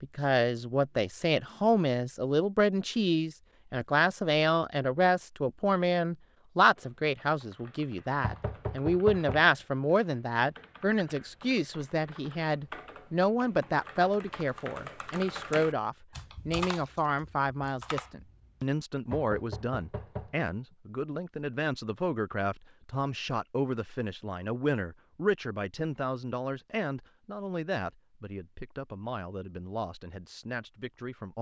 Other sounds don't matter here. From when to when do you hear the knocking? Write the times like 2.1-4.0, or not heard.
8.2-9.4, 19.1-20.4.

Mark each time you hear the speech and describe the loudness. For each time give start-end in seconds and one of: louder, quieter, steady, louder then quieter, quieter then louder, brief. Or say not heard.
0.0-31.3 quieter.